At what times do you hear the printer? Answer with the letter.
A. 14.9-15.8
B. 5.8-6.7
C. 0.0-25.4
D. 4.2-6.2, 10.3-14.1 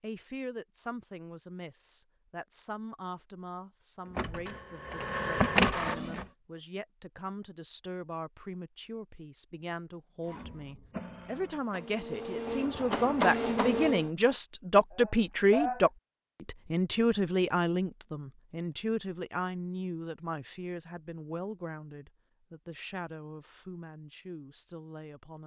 D.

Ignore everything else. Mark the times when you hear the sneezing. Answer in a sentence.
You can hear the sneezing from 14.9 to 15.8 s.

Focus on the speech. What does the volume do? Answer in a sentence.
The loudness of the speech goes up, then down.